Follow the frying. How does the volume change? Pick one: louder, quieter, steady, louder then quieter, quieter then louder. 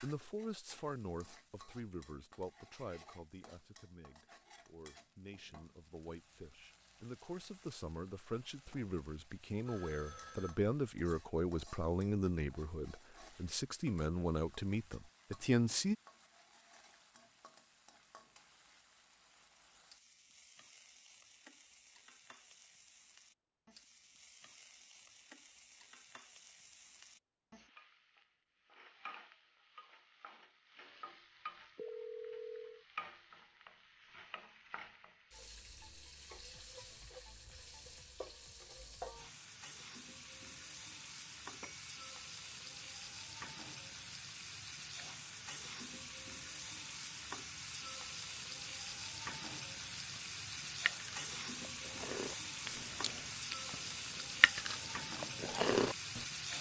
louder.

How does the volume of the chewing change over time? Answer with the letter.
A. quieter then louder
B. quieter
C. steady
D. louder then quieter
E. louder
E.